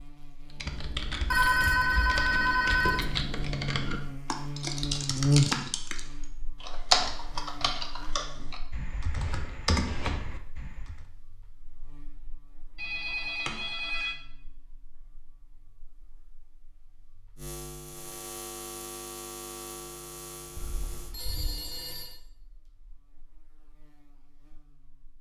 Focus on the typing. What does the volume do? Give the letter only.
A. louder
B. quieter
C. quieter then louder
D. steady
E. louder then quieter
E.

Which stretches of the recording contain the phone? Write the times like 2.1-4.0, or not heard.
1.3-3.0, 12.8-14.2, 20.6-22.1.